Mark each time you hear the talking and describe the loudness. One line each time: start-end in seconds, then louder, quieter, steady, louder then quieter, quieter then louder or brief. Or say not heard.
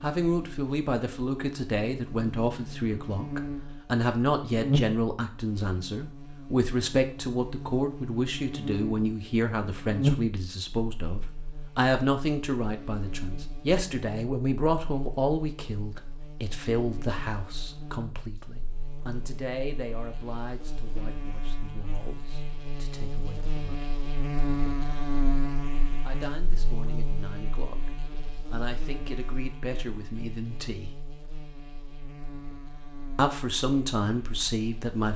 0.0-23.9 quieter
26.0-30.9 louder
33.1-35.1 brief.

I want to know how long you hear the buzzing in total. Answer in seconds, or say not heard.
35 s.